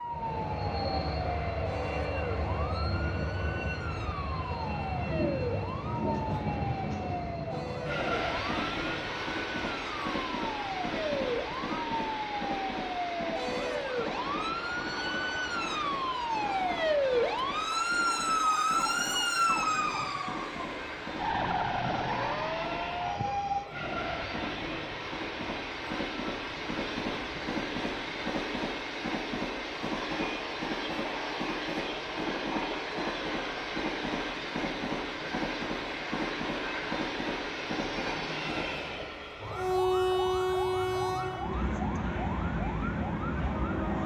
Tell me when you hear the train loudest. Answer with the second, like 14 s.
40 s.